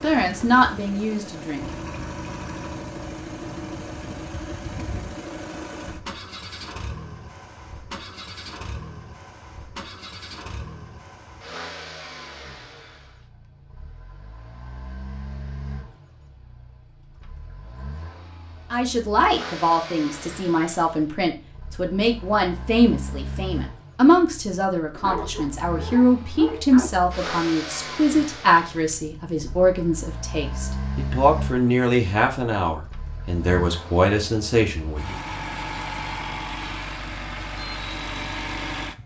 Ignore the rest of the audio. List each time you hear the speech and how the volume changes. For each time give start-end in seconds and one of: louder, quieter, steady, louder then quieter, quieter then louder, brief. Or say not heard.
0.0-1.9 brief
18.7-35.1 steady.